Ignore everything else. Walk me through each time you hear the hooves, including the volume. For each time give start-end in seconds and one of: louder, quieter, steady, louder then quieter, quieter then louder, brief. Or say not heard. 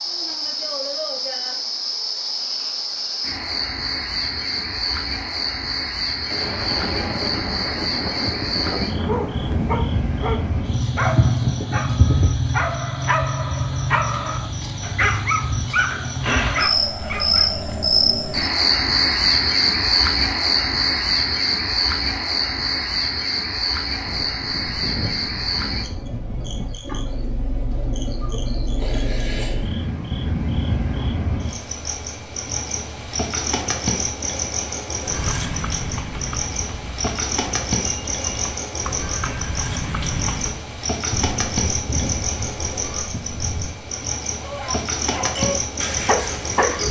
35.0-40.6 quieter then louder.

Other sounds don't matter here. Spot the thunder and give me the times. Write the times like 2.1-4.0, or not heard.
6.3-9.8, 24.1-26.7, 41.1-43.8.